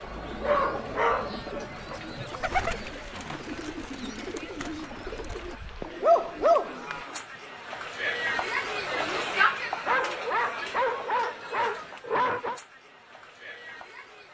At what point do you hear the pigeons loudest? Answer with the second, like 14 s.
3 s.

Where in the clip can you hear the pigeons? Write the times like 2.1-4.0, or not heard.
0.0-7.4.